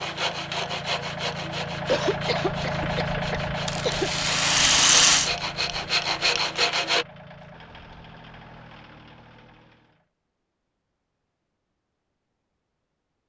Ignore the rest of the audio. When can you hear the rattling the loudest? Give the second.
5 s.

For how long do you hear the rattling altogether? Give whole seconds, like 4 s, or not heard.
2 s.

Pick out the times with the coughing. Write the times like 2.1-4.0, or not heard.
1.9-4.1.